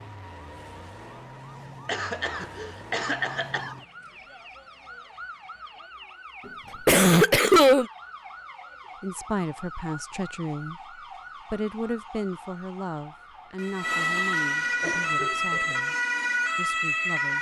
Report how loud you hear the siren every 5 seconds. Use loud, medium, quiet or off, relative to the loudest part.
quiet, quiet, medium, loud.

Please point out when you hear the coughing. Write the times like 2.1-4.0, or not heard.
1.9-3.8, 6.5-7.8, 14.8-15.8.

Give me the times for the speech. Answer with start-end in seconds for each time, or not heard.
9.0-15.9, 16.6-17.3.